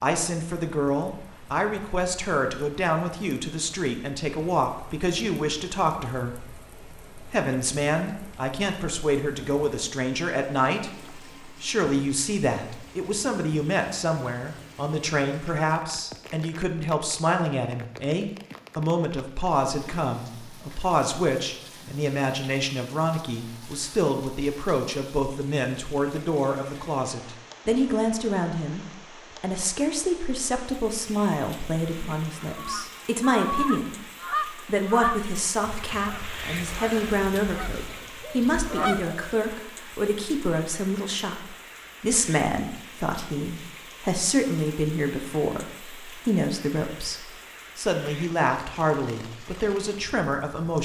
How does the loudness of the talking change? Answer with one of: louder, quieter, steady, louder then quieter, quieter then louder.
steady.